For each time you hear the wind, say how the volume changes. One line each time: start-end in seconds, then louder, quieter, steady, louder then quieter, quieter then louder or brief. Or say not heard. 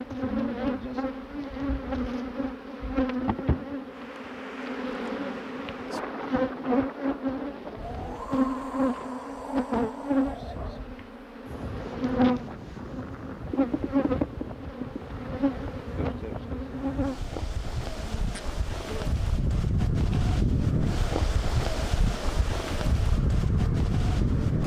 3.9-24.6 louder.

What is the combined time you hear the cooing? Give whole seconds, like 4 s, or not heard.
not heard.